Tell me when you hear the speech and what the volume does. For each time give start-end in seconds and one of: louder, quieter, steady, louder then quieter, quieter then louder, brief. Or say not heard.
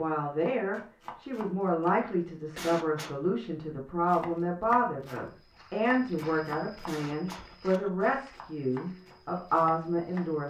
0.0-10.4 steady.